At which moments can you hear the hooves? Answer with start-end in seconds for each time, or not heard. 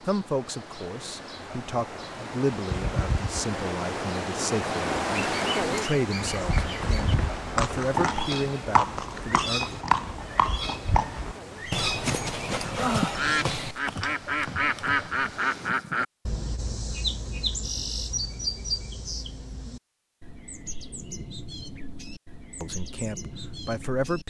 6.3-15.5.